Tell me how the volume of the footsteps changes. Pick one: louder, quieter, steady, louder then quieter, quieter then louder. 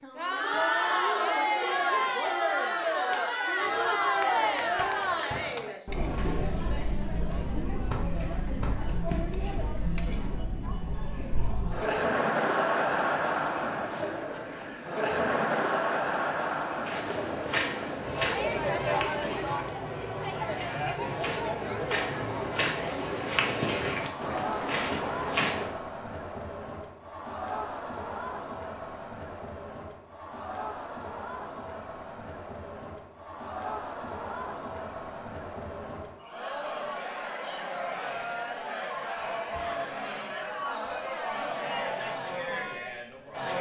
quieter then louder.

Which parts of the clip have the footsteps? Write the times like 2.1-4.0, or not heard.
16.9-25.8.